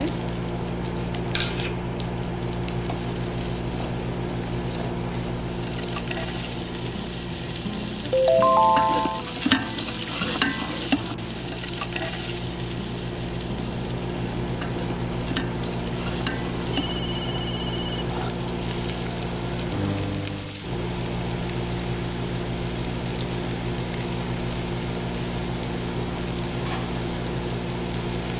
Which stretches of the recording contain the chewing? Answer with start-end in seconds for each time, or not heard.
not heard.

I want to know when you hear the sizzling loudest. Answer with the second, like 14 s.
10 s.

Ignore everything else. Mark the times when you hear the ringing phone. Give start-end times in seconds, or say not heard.
8.1-9.2, 16.6-18.1.